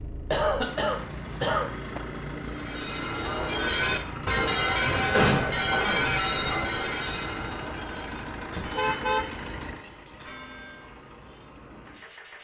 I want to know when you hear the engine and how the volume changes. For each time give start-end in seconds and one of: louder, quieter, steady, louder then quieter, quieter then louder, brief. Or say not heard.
0.0-12.3 quieter.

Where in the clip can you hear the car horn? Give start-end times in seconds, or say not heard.
8.6-9.9.